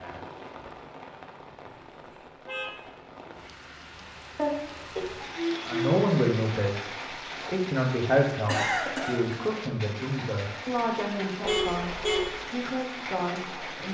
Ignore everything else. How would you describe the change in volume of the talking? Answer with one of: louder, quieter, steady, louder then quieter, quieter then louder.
quieter.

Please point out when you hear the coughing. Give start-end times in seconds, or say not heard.
4.3-5.0, 8.4-9.6.